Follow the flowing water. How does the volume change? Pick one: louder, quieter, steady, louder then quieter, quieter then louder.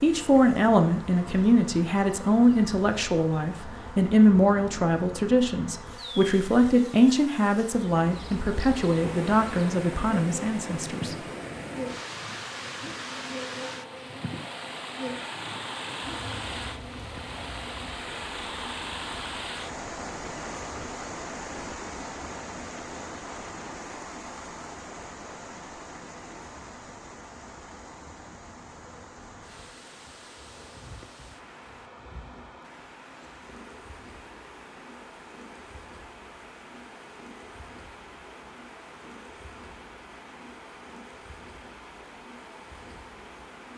quieter.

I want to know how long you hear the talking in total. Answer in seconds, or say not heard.
11 s.